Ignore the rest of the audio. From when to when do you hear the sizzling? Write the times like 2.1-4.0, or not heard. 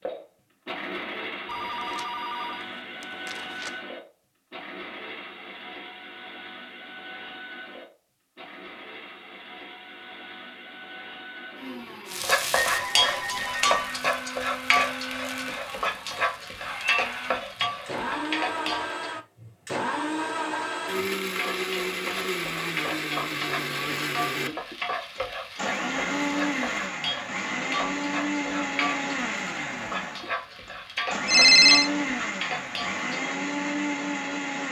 12.1-19.1, 21.2-33.0.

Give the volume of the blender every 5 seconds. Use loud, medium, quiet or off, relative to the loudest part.
medium, quiet, medium, loud, loud, loud, loud.